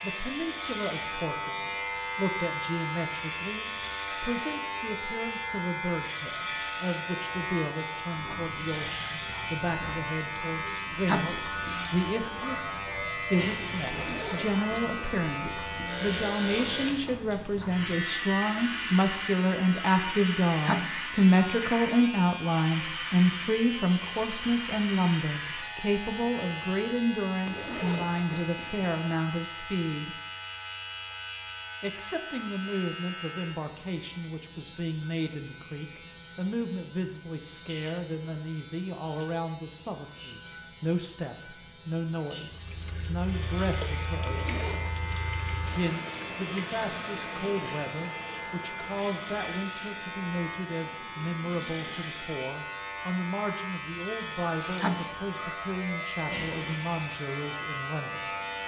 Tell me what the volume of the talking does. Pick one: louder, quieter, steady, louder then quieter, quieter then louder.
louder then quieter.